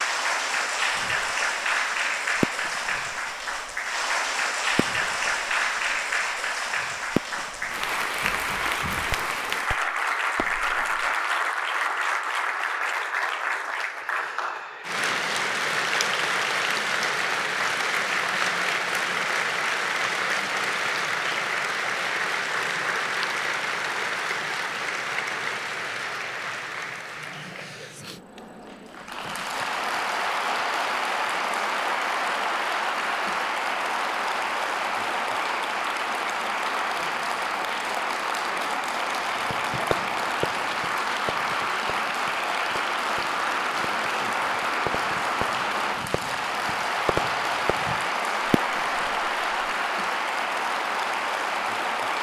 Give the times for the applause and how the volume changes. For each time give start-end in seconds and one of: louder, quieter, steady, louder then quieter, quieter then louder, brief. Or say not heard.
0.0-52.1 steady.